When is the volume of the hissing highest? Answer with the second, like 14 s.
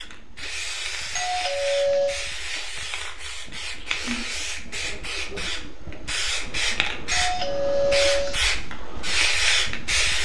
10 s.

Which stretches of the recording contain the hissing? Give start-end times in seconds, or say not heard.
0.0-10.2.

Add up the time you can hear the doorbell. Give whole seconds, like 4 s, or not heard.
2 s.